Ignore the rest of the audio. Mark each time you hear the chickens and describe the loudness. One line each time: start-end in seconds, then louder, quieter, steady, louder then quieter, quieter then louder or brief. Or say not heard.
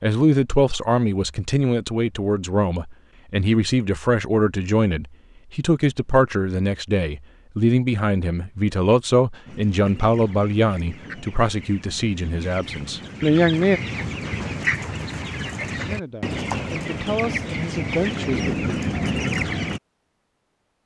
9.4-19.8 louder.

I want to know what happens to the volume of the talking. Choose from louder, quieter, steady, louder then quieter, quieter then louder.
steady.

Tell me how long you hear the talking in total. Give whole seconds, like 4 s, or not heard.
17 s.